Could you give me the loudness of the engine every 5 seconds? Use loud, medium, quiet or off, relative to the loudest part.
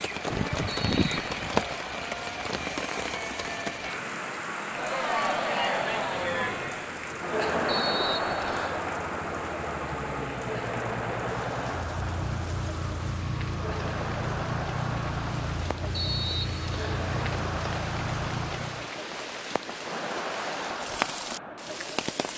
off, loud, loud, loud, off.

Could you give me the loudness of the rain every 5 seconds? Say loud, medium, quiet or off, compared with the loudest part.
loud, medium, medium, medium, loud.